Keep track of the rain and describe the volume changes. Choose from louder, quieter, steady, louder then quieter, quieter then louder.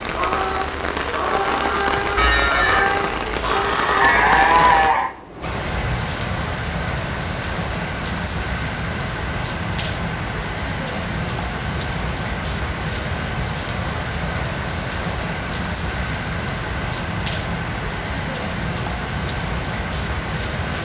steady.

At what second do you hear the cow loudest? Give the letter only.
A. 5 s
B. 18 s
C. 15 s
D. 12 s
A.